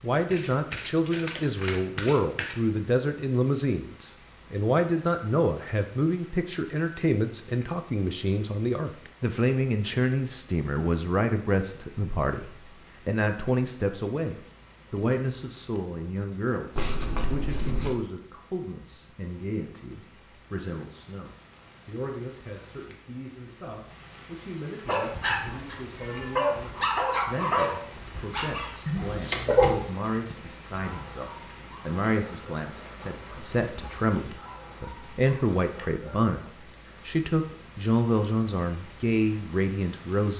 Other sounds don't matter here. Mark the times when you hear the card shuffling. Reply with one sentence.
The card shuffling can be heard from 0.3 to 2.5 s, from 16.8 to 17.9 s and from 28.9 to 29.9 s.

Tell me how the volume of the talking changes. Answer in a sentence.
The volume of the talking goes down, then up.